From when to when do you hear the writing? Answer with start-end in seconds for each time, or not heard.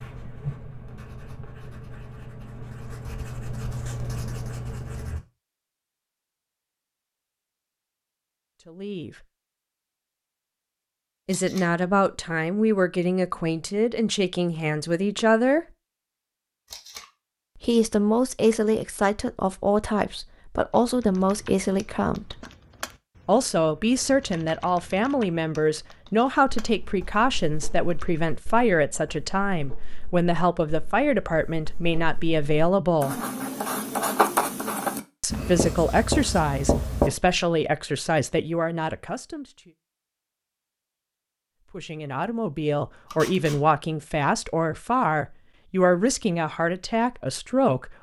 0.0-5.2, 26.6-37.1.